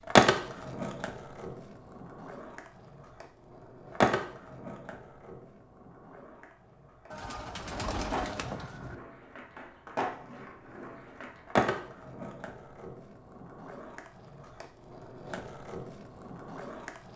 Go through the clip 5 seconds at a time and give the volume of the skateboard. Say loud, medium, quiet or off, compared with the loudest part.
loud, quiet, medium, quiet.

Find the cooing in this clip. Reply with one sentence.
You can hear the cooing from 7.1 to 8.9 s.